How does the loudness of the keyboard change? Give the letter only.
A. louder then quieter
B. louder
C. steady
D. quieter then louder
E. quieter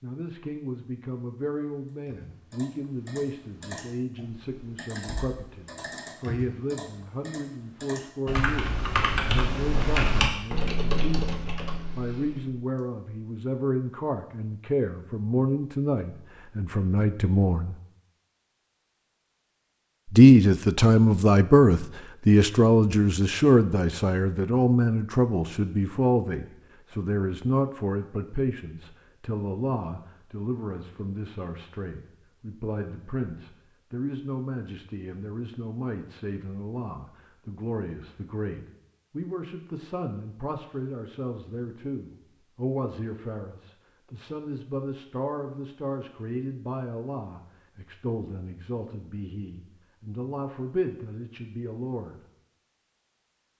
B.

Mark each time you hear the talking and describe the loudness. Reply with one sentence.
You can hear the talking from 0.0 to 17.8 s, getting louder; and from 20.1 to 52.2 s, getting quieter.